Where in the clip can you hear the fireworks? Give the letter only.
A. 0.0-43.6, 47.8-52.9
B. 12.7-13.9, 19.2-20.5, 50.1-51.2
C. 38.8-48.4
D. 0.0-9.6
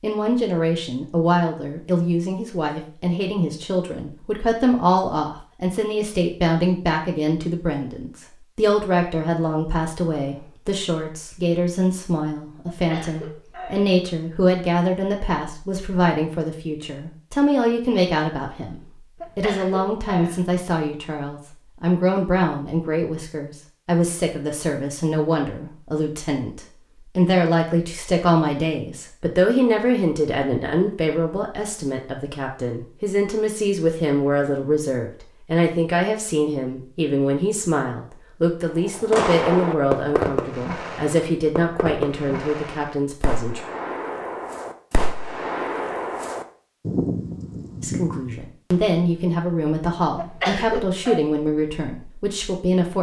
C.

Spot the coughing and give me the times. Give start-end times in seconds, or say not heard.
12.7-13.9, 19.2-20.5, 50.1-51.2.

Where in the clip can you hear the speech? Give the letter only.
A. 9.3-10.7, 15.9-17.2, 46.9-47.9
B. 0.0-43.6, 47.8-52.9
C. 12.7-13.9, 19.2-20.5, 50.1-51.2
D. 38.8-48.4
B.